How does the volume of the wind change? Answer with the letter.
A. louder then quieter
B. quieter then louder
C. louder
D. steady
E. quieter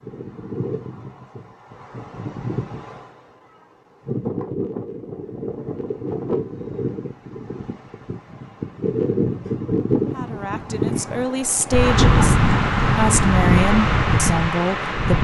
C.